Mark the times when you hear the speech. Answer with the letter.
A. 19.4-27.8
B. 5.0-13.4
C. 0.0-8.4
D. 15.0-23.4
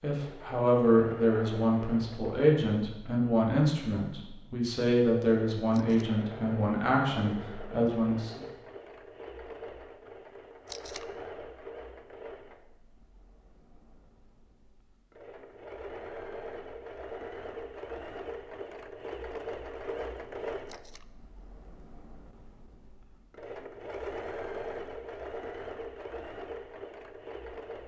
C.